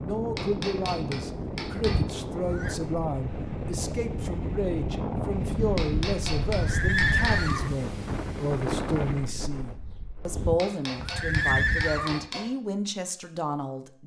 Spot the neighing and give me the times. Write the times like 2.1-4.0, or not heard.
1.8-2.8, 5.8-7.8, 10.2-12.2.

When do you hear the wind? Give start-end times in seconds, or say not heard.
0.0-10.6.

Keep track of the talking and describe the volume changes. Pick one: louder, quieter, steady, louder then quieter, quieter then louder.
steady.